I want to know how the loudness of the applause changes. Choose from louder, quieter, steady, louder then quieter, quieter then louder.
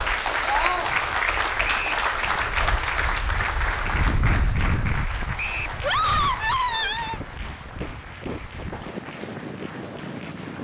quieter.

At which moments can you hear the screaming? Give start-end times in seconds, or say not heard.
0.4-0.9, 5.8-7.2.